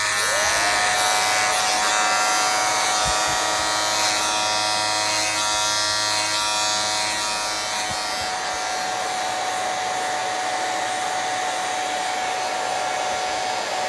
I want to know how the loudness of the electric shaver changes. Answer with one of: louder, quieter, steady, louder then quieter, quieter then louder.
quieter.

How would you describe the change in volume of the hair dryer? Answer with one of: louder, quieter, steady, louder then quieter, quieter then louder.
quieter then louder.